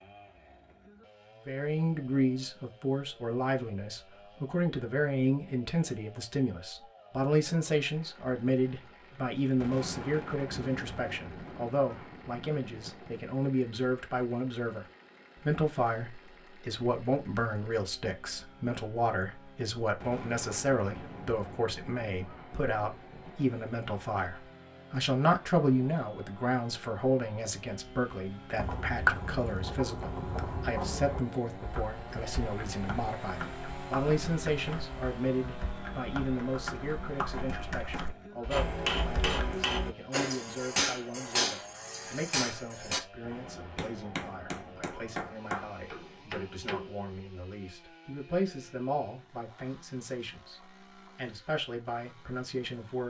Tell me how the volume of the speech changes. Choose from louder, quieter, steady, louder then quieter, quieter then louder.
quieter.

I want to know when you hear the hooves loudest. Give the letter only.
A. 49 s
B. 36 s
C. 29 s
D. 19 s
C.